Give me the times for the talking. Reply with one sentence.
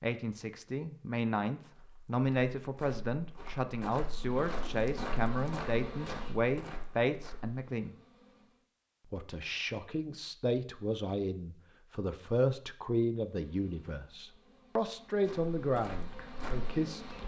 The talking can be heard from 0.0 to 8.0 s and from 9.1 to 17.2 s.